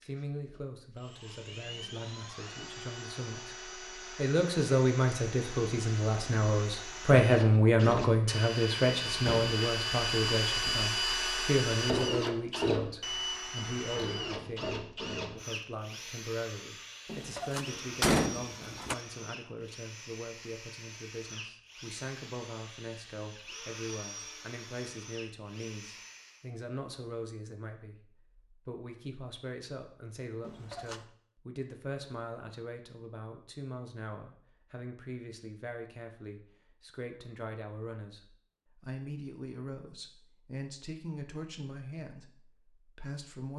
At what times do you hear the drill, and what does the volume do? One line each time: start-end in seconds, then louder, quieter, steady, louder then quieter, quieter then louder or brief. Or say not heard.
0.0-26.5 louder then quieter.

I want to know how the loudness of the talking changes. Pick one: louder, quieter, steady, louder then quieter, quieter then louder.
quieter.